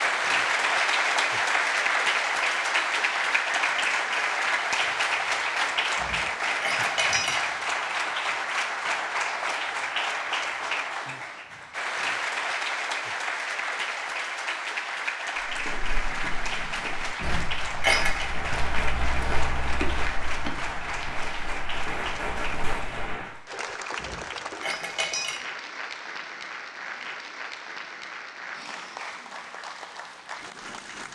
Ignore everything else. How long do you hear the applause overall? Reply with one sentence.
You can hear the applause for 31 seconds altogether.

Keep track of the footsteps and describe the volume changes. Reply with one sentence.
The loudness of the footsteps goes up, then down.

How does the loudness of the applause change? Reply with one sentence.
The loudness of the applause goes down.